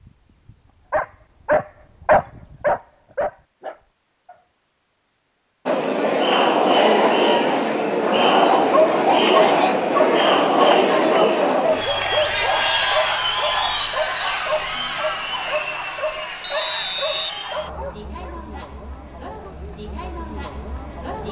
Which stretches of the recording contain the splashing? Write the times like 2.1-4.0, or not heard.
not heard.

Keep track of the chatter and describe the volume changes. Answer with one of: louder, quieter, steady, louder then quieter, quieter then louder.
quieter.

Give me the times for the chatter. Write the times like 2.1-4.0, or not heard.
5.7-21.2.